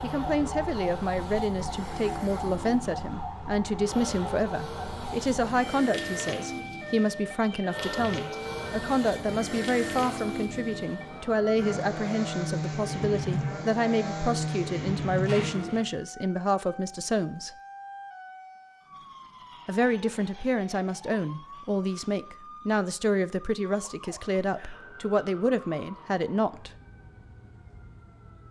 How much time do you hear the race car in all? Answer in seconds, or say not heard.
16 s.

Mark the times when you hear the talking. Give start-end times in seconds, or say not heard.
0.0-17.6, 19.6-26.8.